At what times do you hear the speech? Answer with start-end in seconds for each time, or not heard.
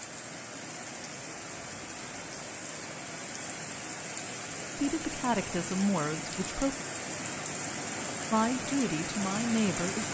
4.8-6.8, 8.3-10.0.